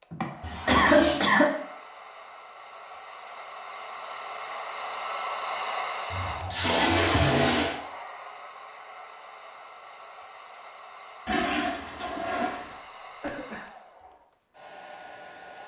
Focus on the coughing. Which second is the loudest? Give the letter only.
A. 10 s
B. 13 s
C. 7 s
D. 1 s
D.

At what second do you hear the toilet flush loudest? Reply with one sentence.
The loudest moment of the toilet flush is at 7 seconds.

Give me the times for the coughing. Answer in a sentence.
You can hear the coughing from 0.1 to 1.5 s and from 12.3 to 13.7 s.